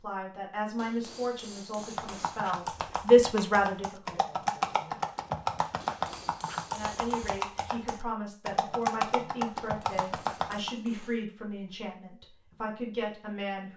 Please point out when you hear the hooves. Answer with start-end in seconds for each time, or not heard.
1.8-10.7.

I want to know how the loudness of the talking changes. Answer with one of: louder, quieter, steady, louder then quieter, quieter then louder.
louder then quieter.